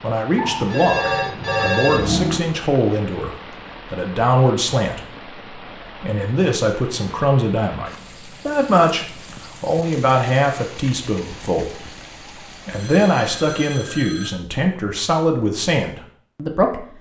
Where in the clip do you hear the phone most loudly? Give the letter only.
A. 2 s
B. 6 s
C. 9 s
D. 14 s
A.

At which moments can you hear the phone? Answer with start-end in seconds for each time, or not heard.
0.3-2.4, 12.7-14.3.